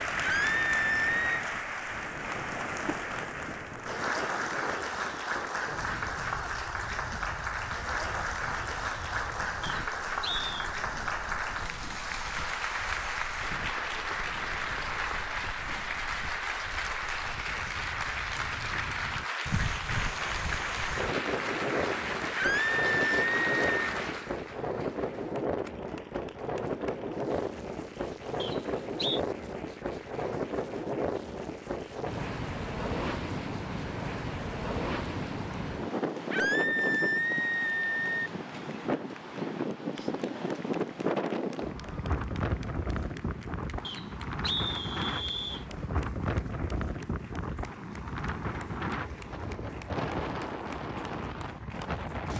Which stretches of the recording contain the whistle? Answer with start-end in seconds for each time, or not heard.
9.6-10.6, 28.4-29.2, 43.9-45.6.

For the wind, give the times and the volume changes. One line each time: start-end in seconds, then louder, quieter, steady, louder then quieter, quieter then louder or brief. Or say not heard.
0.0-52.3 louder.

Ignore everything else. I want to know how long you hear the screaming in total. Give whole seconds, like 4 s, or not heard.
5 s.